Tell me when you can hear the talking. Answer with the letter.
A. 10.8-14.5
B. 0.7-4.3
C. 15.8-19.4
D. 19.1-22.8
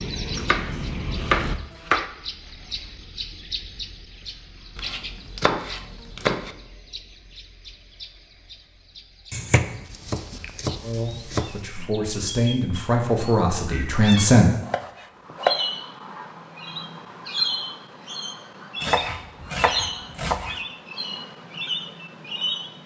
A.